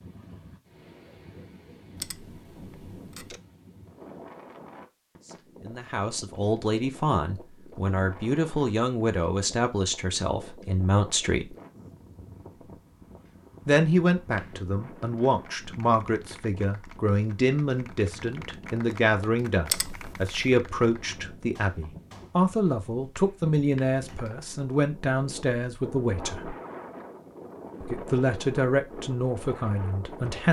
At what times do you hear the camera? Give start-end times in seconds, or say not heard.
1.9-3.4, 19.6-20.5.